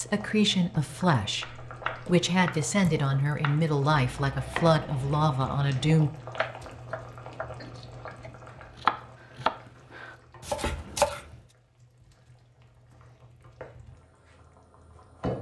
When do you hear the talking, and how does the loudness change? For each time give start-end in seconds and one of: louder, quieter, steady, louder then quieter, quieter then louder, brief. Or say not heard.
0.0-6.1 steady.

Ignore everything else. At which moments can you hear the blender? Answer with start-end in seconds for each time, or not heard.
not heard.